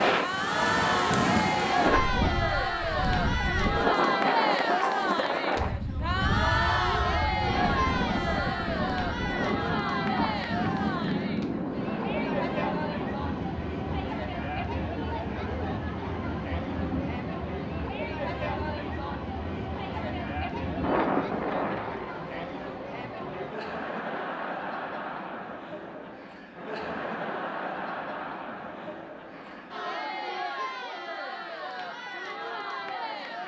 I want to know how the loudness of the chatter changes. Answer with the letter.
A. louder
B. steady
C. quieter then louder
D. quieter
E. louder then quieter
D.